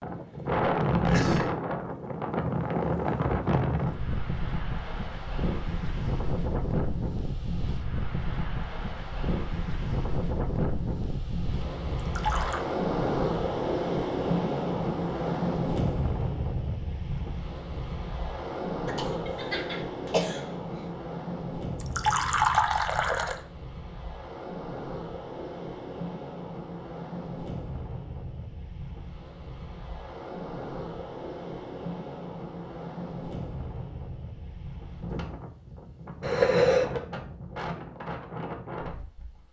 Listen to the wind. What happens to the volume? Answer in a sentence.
The loudness of the wind goes down.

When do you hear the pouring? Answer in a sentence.
You can hear the pouring from 11.9 to 12.6 s and from 21.8 to 23.4 s.